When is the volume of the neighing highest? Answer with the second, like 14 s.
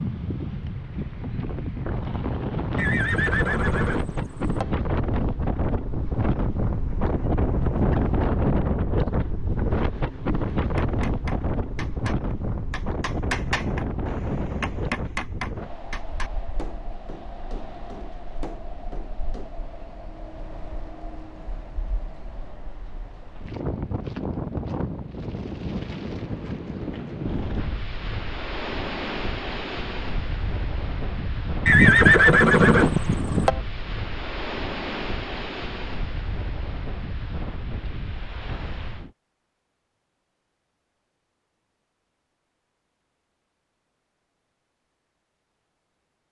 32 s.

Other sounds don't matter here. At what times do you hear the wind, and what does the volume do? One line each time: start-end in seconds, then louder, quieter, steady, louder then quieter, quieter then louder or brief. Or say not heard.
0.0-39.1 quieter then louder.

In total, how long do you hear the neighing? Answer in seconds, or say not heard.
4 s.